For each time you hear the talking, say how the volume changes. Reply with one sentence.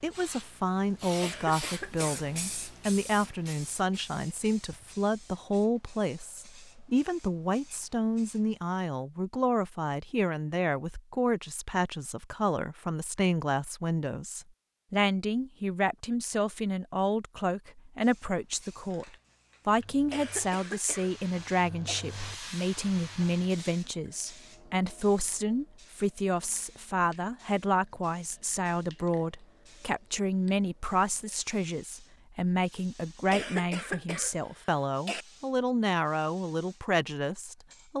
You can hear the talking from 0.0 to 37.9 s, at a steady volume.